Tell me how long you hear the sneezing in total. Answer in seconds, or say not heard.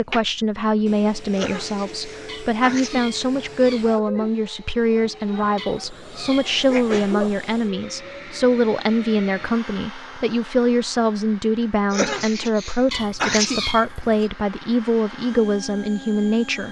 5 s.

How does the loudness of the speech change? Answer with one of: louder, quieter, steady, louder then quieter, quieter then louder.
steady.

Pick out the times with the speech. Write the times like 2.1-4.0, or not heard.
0.0-16.6.